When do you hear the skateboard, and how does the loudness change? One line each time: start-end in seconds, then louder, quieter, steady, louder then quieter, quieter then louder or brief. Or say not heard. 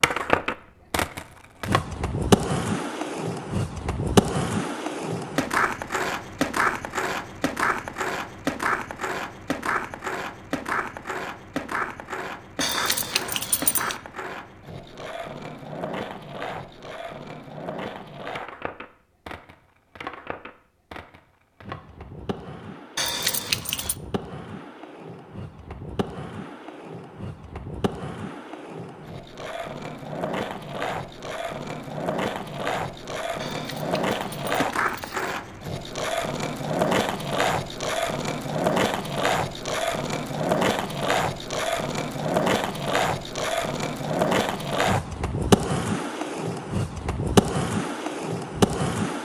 0.0-49.1 quieter then louder.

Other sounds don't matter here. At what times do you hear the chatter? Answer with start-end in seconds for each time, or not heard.
not heard.